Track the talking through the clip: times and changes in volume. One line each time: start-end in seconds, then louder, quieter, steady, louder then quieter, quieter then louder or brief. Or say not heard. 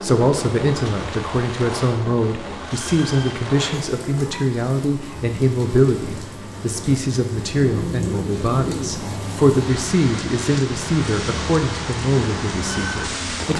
0.0-13.5 steady.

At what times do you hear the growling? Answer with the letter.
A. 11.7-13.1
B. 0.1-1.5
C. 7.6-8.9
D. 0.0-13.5
C.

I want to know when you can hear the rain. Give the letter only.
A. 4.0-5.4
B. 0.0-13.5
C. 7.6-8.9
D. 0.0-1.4
B.